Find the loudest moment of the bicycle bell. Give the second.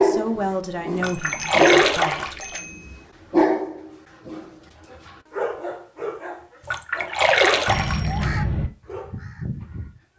8 s.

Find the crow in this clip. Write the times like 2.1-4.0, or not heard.
8.1-10.0.